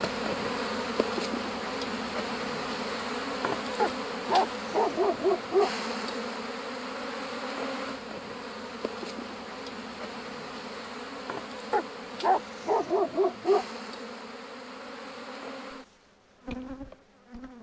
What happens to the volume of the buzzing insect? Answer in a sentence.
The loudness of the buzzing insect goes down.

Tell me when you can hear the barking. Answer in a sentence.
You can hear the barking from 3.8 to 5.7 s and from 11.7 to 13.7 s.